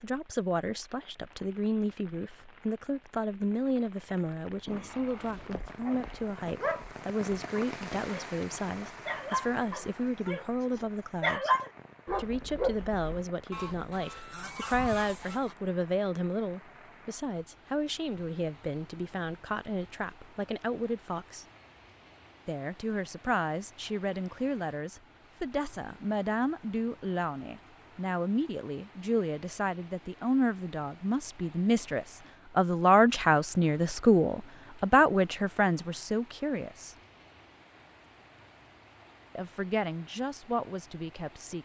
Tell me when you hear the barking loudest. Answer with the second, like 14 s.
11 s.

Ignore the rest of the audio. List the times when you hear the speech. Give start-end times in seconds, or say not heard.
0.0-11.5, 12.2-21.4, 22.4-37.0, 39.4-41.6.